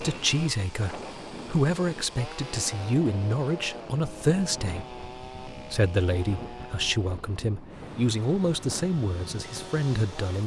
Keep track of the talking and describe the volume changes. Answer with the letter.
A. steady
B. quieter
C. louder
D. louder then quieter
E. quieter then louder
A.